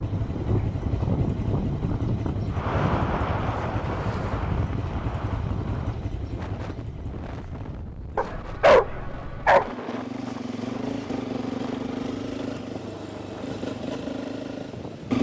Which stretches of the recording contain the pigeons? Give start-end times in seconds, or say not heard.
not heard.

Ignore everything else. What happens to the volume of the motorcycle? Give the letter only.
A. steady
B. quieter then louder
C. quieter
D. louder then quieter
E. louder
B.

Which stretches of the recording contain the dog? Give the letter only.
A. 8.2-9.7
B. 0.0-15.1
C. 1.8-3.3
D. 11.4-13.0
A.